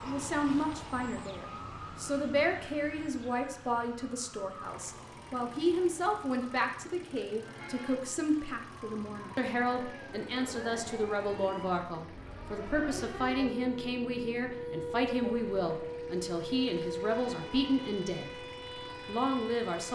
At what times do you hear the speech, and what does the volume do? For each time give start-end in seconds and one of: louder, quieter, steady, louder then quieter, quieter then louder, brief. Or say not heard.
0.0-18.4 steady
19.1-19.9 brief.